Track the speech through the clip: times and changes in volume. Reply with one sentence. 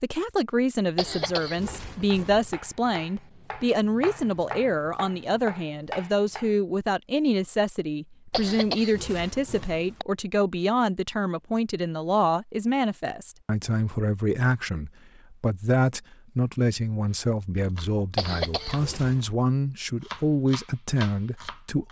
You can hear the speech from 0.0 to 21.8 s, at a steady volume.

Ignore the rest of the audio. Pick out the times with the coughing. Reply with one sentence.
You can hear the coughing from 0.9 to 2.5 s, from 8.3 to 10.1 s and from 18.1 to 19.2 s.